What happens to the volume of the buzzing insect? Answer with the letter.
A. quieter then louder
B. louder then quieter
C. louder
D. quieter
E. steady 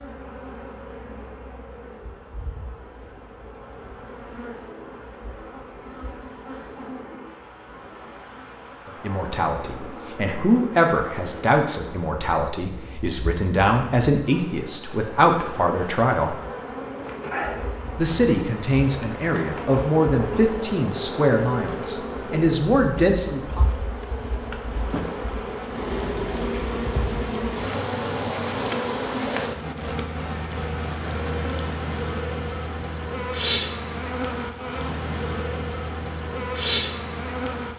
C.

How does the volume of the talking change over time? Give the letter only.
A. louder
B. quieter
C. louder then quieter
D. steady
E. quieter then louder
D.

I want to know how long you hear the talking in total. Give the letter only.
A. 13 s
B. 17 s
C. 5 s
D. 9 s
A.